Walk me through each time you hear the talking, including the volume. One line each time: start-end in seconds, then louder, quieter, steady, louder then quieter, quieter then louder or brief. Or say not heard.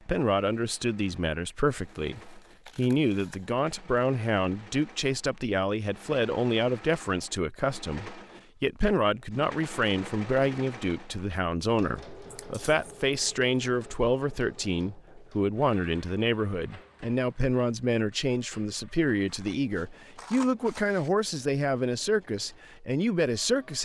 0.1-23.8 steady.